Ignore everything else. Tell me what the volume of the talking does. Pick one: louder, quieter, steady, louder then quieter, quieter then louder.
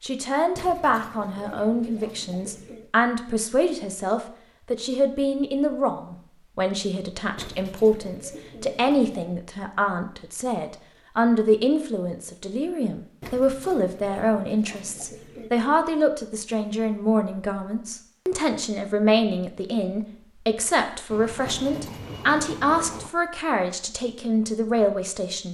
steady.